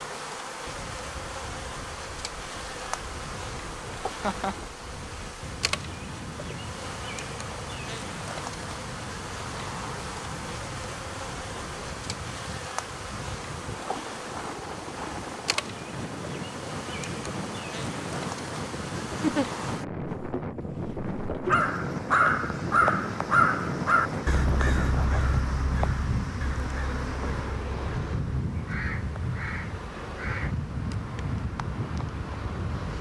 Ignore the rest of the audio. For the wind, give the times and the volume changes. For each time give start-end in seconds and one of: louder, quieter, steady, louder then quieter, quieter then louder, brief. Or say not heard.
0.0-32.9 louder.